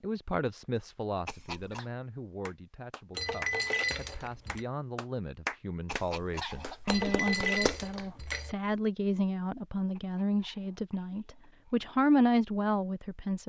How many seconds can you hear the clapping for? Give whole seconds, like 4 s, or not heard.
6 s.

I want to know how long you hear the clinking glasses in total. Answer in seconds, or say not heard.
3 s.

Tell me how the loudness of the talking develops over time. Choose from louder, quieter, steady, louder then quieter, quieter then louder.
louder.